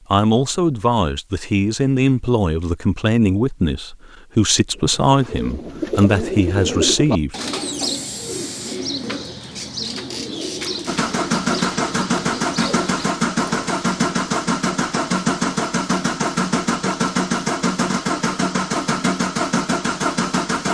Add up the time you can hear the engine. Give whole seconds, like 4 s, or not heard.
10 s.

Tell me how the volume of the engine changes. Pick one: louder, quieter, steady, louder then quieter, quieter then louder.
steady.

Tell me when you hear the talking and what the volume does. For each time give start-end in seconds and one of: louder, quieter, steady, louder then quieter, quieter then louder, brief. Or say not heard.
0.1-7.3 steady.